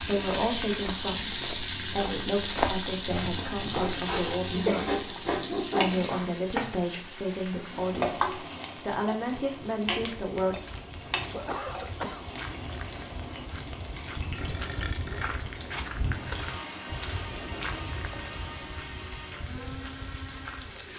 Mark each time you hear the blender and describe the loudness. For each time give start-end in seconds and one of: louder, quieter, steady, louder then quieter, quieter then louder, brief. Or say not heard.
16.1-20.9 steady.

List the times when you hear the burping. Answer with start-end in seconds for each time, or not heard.
14.3-15.4.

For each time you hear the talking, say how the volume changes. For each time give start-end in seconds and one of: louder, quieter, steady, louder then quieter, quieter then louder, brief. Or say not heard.
0.0-10.6 steady.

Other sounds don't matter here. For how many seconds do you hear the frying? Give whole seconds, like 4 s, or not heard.
21 s.